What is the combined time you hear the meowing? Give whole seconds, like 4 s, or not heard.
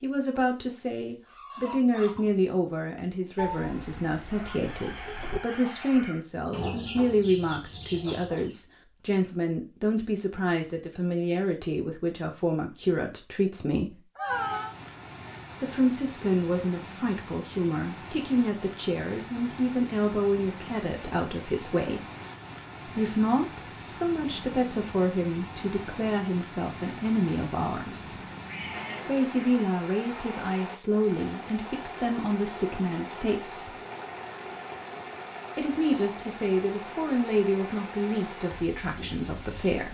4 s.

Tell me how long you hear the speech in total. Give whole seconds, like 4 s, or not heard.
35 s.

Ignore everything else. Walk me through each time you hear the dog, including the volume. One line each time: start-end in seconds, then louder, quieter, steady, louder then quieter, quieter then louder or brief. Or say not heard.
not heard.